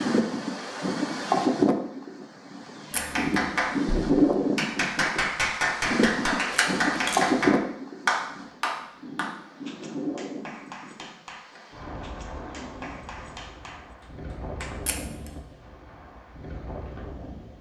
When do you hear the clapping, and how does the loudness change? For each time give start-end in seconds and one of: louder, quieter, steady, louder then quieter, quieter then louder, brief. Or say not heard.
3.0-14.8 quieter.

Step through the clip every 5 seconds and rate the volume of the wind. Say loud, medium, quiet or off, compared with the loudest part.
loud, loud, quiet, quiet.